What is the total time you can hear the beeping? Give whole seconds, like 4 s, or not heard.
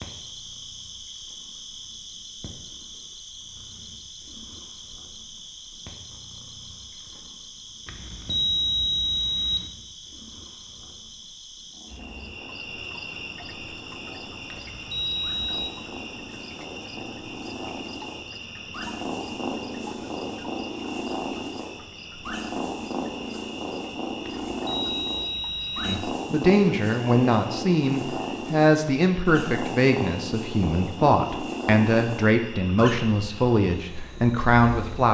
5 s.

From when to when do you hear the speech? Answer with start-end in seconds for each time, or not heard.
25.8-35.0.